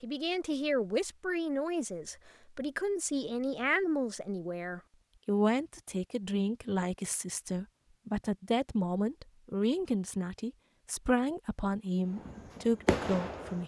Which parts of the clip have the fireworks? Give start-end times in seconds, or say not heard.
12.2-13.6.